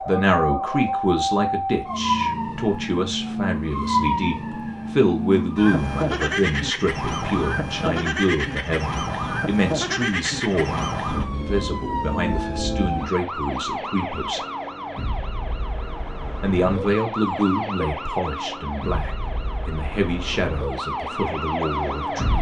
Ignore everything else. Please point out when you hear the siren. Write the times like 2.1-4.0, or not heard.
0.0-22.3.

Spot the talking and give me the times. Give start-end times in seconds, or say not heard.
0.0-14.4, 16.4-22.3.